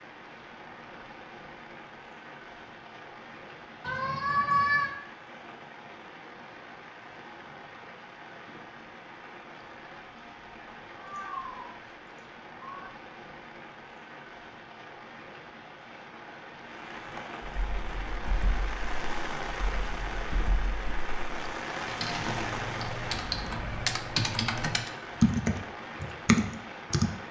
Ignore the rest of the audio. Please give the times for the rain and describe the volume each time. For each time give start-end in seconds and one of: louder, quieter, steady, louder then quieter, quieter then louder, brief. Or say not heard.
0.0-27.2 louder.